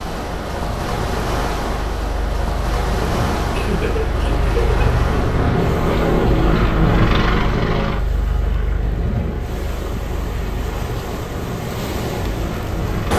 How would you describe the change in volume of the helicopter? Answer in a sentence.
The loudness of the helicopter goes up, then down.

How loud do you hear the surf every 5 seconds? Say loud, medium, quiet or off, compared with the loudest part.
loud, medium, loud.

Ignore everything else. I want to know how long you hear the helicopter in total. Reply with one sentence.
The helicopter can be heard for 13 seconds in total.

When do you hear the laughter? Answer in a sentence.
The laughter can be heard from 3.5 to 5.0 s.